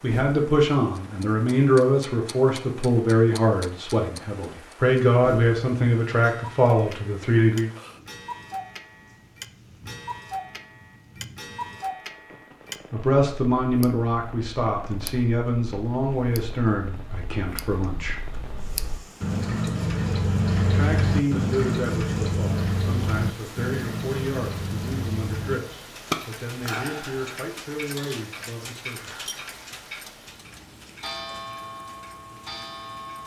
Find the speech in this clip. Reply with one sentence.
The speech can be heard from 0.0 to 7.7 s, from 12.9 to 18.2 s and from 20.6 to 29.2 s.